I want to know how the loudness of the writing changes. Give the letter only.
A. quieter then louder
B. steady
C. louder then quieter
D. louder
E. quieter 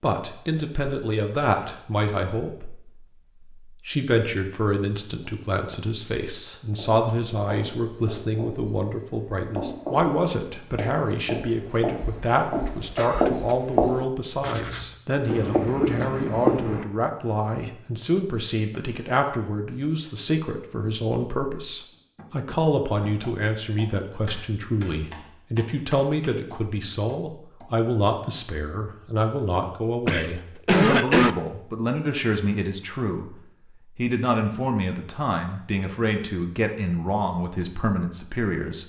D.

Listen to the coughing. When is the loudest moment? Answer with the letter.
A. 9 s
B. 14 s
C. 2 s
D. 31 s
D.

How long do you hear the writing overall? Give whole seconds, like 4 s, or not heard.
10 s.